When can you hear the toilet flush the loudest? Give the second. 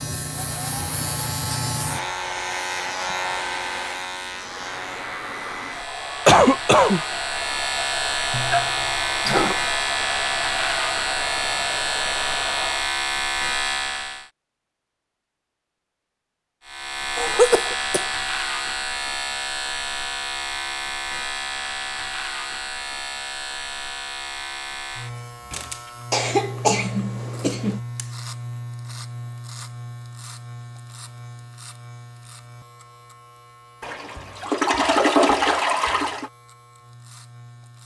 35 s.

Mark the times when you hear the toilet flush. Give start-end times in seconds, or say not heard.
8.3-9.6, 33.8-36.3.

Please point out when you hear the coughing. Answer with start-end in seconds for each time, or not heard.
6.2-7.0, 17.1-18.1, 26.1-27.8.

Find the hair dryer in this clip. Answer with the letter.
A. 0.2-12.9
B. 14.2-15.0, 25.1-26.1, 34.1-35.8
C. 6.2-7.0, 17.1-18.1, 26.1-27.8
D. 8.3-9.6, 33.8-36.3
A.